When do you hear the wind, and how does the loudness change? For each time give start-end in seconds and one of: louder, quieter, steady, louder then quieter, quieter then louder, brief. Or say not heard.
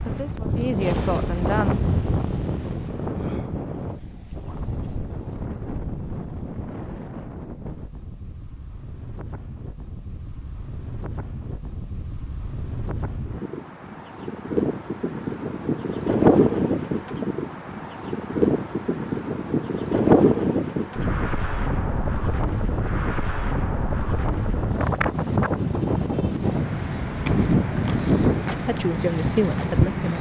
0.0-30.1 quieter then louder.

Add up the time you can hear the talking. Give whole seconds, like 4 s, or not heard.
3 s.